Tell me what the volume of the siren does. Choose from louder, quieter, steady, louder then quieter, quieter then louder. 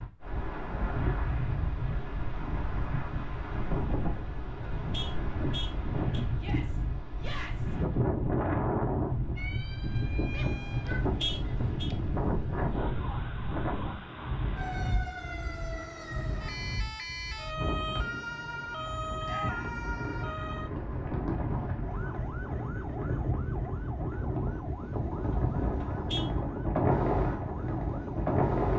louder then quieter.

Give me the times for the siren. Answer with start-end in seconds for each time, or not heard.
9.3-28.4.